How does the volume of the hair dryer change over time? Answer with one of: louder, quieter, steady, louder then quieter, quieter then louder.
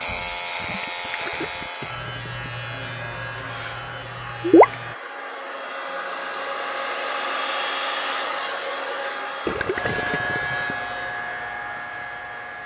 louder then quieter.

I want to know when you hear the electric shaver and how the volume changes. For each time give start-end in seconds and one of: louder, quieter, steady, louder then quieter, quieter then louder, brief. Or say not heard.
0.0-5.0 quieter
9.7-12.6 brief.